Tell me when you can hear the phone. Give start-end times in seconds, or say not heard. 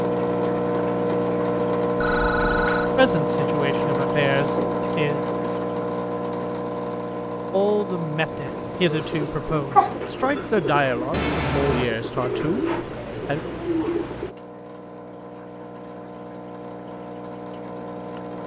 2.0-3.0, 11.1-11.9.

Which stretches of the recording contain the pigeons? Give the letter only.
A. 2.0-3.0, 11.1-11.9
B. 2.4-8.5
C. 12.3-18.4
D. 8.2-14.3
D.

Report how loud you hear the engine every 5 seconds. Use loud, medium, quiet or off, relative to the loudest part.
loud, medium, quiet, quiet.